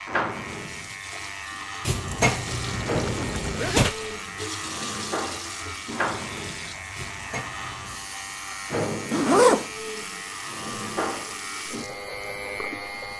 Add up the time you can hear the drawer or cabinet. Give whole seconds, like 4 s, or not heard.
3 s.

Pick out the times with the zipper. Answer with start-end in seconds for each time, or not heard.
3.0-4.2, 9.1-9.7.